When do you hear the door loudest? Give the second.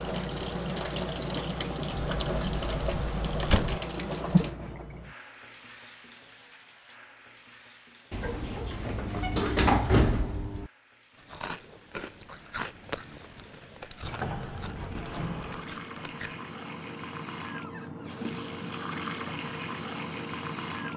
10 s.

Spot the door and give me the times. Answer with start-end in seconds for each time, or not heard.
1.9-3.8, 8.1-10.7, 14.0-15.7.